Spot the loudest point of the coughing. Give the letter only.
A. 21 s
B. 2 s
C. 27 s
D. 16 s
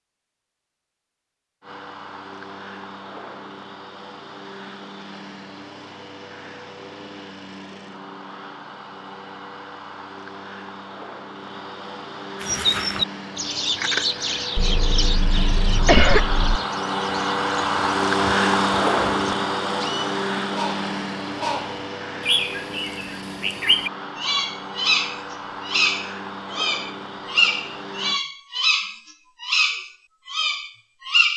D.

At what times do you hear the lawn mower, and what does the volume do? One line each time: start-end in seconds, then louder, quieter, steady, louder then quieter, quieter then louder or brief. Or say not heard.
1.6-28.2 louder then quieter.